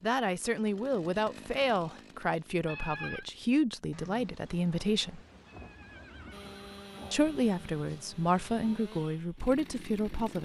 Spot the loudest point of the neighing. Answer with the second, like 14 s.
3 s.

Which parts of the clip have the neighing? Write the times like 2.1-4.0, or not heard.
2.6-3.2, 5.5-7.2.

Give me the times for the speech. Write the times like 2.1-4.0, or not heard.
0.0-5.2, 7.1-10.4.